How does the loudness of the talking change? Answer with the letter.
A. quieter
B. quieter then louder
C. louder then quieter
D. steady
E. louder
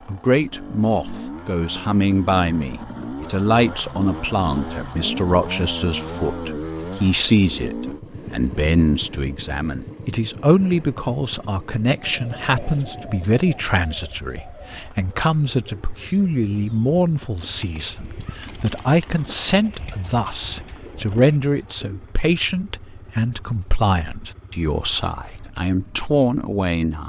D.